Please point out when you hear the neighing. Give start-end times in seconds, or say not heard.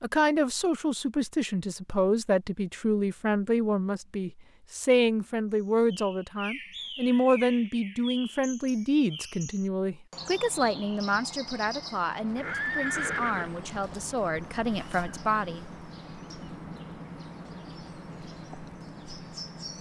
12.3-13.7.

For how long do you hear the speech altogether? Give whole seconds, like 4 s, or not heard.
16 s.